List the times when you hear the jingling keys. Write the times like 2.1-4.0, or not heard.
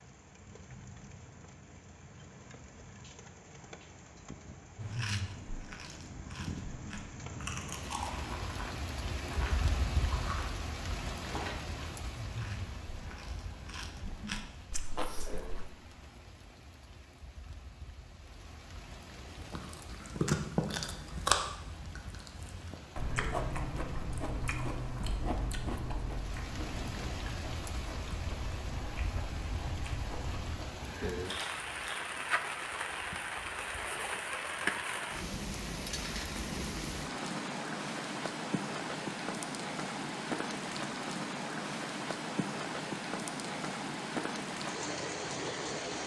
11.2-11.7, 31.2-32.0.